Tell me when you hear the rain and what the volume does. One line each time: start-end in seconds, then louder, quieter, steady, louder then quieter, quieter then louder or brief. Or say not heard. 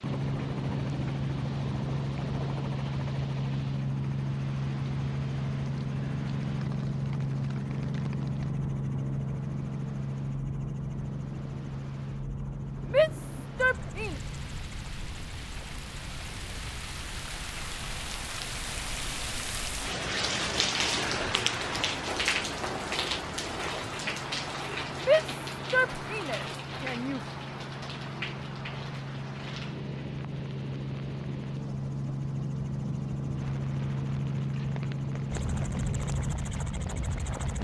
0.0-37.5 louder then quieter.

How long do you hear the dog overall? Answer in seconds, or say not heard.
not heard.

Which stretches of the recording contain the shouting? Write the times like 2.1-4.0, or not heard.
12.8-14.2, 24.9-27.2.